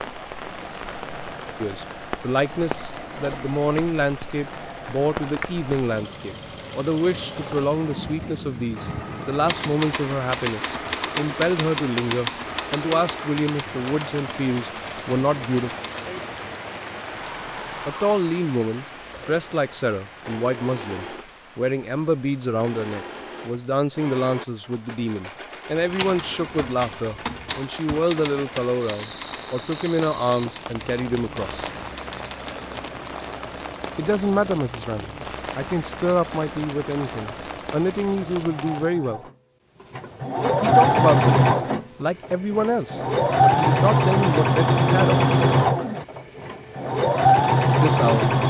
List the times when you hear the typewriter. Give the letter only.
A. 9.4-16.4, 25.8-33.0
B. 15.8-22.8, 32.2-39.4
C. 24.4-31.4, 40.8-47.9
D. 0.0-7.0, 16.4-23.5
A.